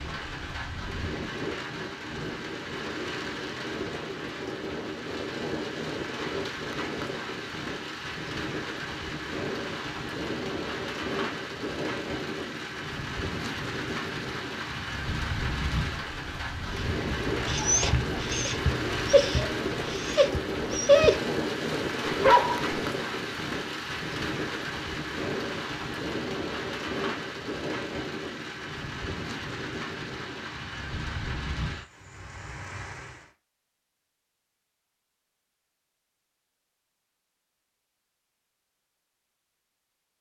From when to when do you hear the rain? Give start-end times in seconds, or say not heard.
0.0-33.3.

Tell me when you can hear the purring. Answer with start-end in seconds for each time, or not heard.
not heard.